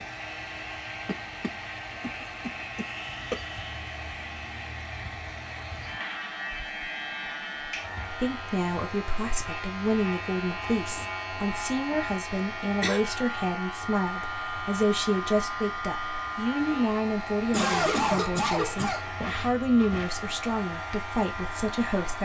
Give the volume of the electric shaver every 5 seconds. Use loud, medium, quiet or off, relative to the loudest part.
medium, loud, loud, loud, loud.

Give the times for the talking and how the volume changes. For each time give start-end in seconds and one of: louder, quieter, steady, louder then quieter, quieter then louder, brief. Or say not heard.
8.1-22.2 steady.